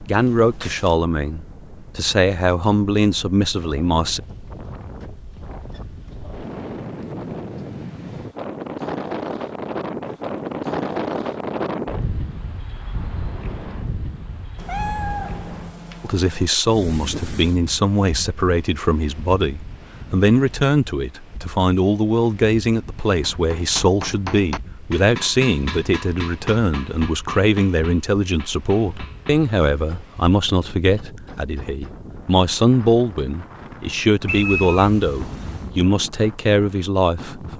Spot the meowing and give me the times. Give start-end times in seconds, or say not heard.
0.1-0.9, 14.6-16.5, 34.2-35.7.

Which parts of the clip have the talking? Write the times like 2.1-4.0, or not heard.
0.1-4.2, 16.0-37.5.